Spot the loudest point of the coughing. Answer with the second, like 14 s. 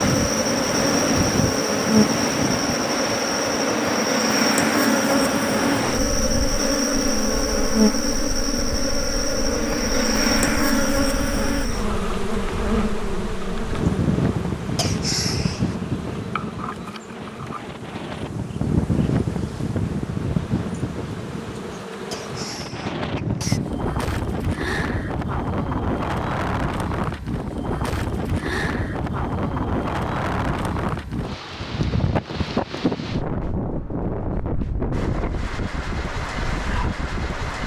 15 s.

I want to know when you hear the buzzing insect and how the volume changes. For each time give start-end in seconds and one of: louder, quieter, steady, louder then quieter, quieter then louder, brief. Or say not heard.
0.0-22.6 quieter.